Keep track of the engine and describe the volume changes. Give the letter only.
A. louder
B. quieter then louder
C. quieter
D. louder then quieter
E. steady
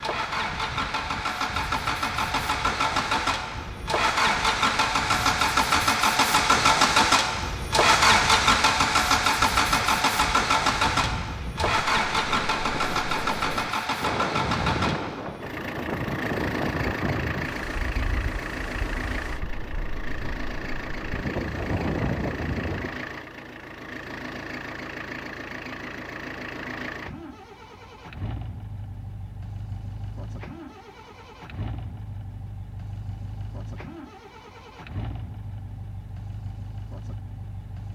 C.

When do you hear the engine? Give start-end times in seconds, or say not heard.
0.0-37.9.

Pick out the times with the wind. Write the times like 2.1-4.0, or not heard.
0.0-23.1.